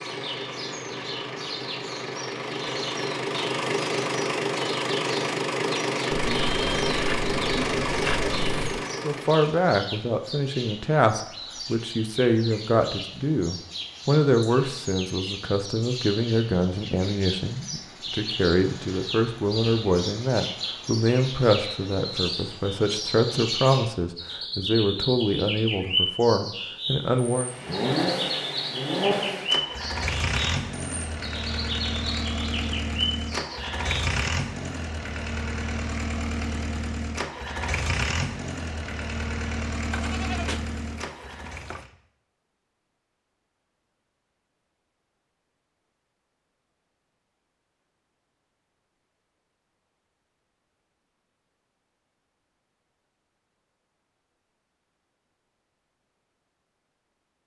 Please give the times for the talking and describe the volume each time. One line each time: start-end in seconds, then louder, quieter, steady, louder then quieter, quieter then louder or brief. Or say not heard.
9.0-27.5 steady.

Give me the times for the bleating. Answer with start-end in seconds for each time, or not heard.
6.1-8.8, 39.9-41.9.